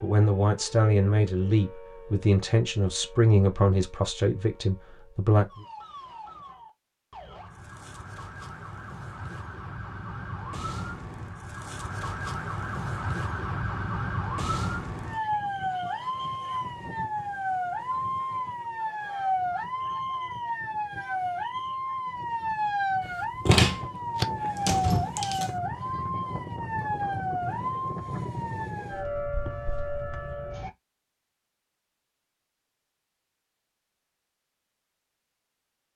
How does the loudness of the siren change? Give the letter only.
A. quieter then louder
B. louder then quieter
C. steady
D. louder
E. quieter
D.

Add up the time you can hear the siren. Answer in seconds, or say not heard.
31 s.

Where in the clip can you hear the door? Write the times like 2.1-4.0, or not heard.
23.4-25.5.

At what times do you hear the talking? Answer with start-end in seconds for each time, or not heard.
0.0-5.5.